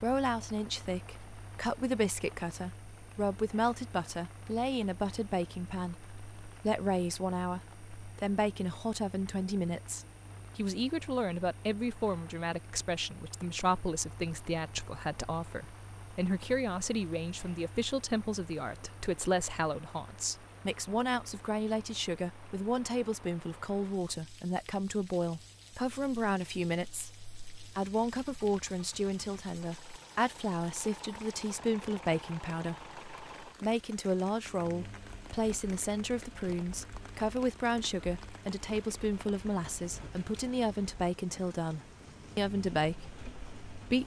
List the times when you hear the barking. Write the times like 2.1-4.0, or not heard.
not heard.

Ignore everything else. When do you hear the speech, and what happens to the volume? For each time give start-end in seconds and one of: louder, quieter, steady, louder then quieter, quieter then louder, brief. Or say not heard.
0.0-44.0 steady.